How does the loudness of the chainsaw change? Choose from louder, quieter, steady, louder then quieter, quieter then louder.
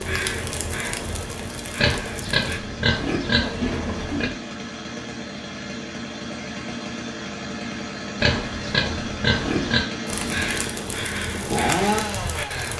louder.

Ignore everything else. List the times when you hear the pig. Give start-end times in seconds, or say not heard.
1.8-4.3, 8.2-9.8.